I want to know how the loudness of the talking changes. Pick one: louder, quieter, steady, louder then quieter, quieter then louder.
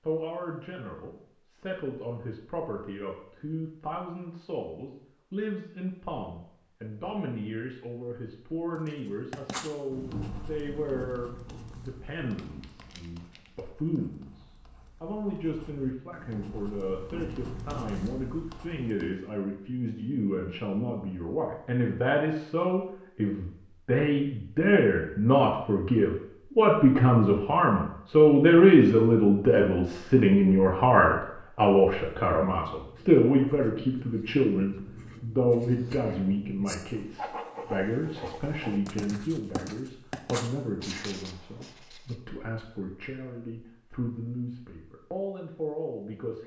louder then quieter.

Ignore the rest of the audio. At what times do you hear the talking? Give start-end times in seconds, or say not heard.
0.0-46.4.